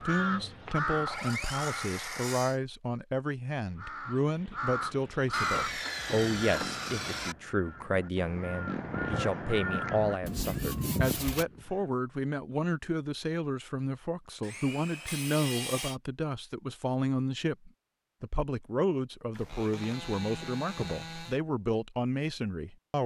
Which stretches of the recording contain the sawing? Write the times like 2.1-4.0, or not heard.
1.1-2.6, 5.3-7.3, 10.2-11.4, 14.4-16.0, 19.3-21.4.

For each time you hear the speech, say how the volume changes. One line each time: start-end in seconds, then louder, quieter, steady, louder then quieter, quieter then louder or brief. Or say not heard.
0.1-23.0 steady.